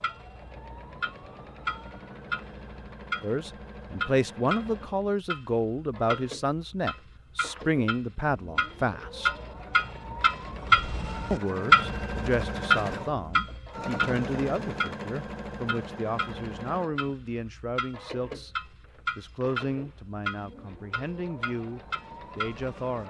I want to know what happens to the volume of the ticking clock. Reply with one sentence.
The volume of the ticking clock goes up, then down.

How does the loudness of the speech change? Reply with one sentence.
The loudness of the speech goes down.